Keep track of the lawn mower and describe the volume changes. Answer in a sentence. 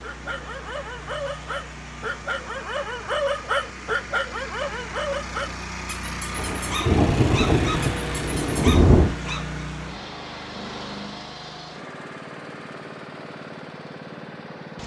The volume of the lawn mower goes up, then down.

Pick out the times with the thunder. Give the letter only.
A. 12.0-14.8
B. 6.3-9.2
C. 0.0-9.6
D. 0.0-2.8
B.